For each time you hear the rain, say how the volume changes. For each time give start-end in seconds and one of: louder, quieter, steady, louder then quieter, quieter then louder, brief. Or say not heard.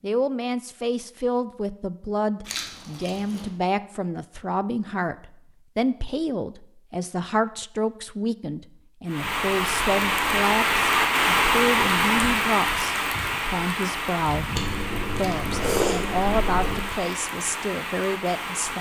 9.1-18.7 quieter.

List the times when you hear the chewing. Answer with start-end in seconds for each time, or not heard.
2.5-3.5, 14.6-16.9.